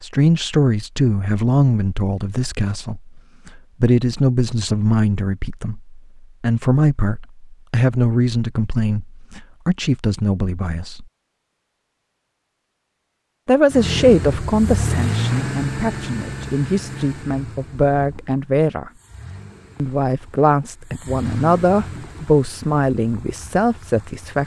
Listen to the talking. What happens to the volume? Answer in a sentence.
The loudness of the talking stays about the same.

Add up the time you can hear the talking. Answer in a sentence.
The talking can be heard for 21 seconds in total.